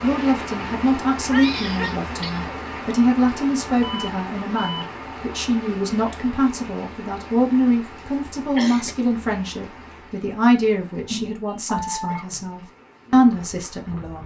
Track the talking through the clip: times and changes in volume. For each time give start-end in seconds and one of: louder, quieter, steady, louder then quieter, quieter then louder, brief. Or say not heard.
0.0-14.2 steady.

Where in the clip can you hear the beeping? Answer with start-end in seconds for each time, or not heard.
3.8-4.8, 11.8-12.2.